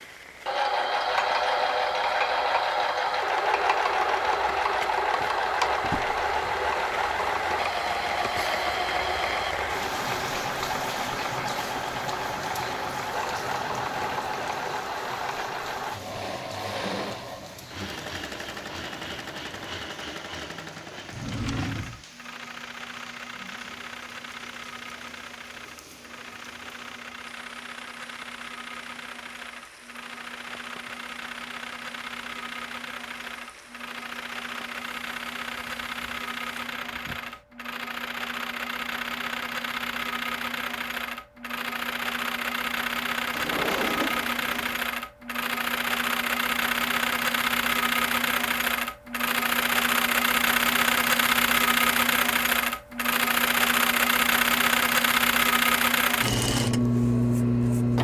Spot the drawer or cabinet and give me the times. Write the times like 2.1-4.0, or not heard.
5.8-6.2, 21.1-22.1, 43.3-44.8.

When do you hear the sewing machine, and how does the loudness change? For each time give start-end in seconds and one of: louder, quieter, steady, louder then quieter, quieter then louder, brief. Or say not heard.
0.5-58.0 quieter then louder.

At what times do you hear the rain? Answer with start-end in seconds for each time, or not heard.
0.0-37.5.